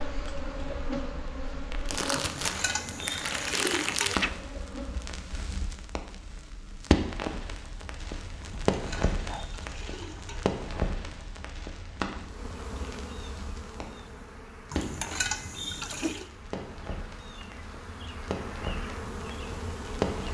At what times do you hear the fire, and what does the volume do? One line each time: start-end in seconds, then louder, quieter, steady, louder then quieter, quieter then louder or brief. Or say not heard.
0.0-20.3 quieter.